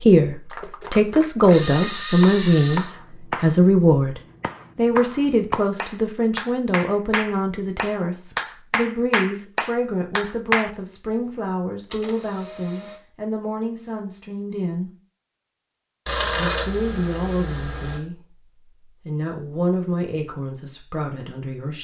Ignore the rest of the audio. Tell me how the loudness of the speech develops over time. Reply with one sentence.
The loudness of the speech goes down.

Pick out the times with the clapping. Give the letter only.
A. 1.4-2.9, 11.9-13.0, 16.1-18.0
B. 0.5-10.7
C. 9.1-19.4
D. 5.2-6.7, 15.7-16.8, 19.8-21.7
B.